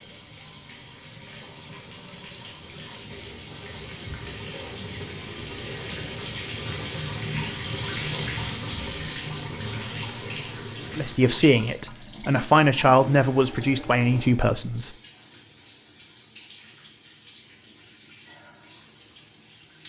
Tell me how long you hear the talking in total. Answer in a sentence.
The talking can be heard for 4 seconds in total.